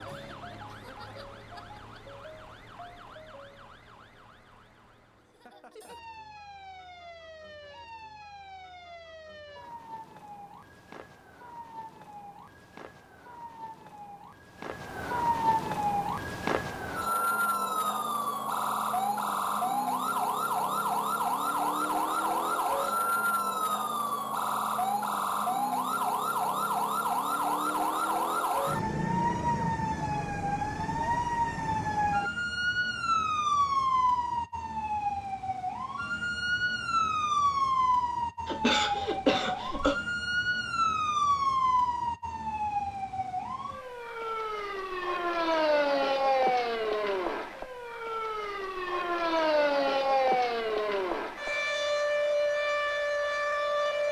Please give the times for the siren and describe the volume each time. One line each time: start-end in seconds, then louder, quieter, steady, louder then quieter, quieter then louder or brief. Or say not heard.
0.0-54.0 louder.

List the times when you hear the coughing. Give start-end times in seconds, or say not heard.
38.5-40.0.